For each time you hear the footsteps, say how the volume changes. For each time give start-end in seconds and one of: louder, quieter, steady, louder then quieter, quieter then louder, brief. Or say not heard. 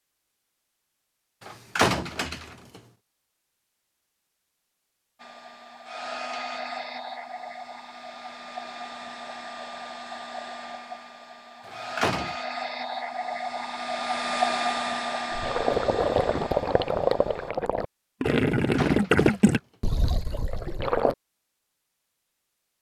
not heard.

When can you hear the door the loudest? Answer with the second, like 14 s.
2 s.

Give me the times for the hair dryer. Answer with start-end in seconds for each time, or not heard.
5.2-17.5.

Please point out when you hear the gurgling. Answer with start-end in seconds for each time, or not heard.
15.3-21.1.